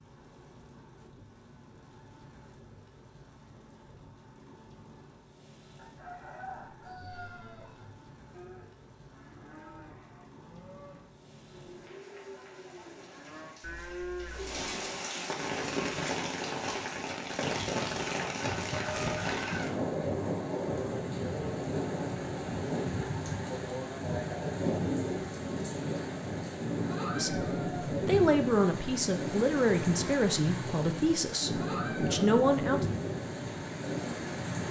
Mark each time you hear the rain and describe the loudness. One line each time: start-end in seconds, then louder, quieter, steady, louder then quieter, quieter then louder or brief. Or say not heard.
0.0-34.6 louder.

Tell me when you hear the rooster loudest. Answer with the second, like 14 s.
19 s.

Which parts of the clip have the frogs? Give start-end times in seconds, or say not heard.
not heard.